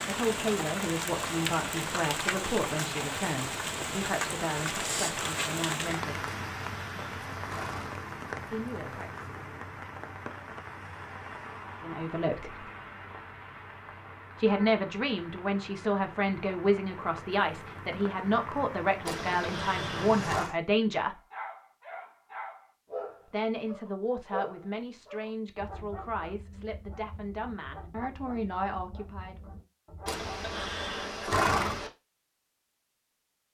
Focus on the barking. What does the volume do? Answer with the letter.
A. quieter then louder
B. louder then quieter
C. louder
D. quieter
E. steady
D.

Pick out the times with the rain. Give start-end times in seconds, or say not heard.
0.0-20.5.